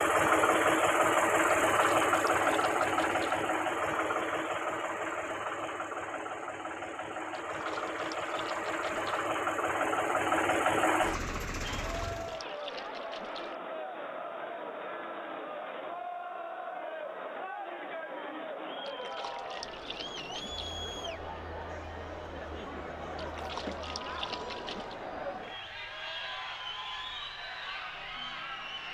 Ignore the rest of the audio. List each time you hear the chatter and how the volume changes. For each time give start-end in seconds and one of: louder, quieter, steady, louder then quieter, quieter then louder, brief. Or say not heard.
11.6-28.8 steady.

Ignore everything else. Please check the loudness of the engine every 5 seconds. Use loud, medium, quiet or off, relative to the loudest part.
loud, medium, loud, off, off, off.